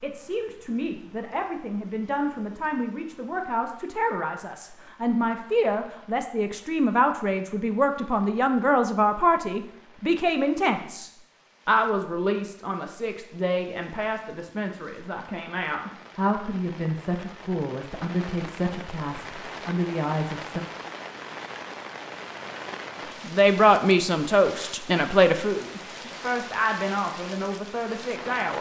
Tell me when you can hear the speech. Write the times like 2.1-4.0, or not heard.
0.0-20.6, 23.2-28.5.